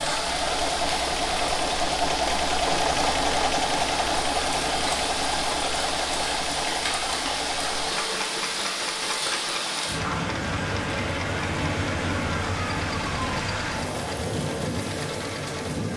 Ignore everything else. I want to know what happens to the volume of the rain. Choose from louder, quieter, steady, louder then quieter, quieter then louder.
steady.